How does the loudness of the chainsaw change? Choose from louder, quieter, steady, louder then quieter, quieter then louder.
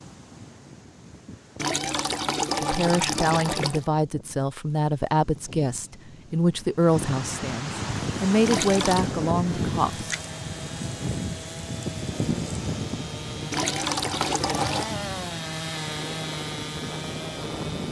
louder.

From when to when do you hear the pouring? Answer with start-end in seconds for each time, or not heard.
1.6-3.9, 8.4-9.1, 13.5-14.9.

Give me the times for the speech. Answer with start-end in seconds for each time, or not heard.
2.6-10.1.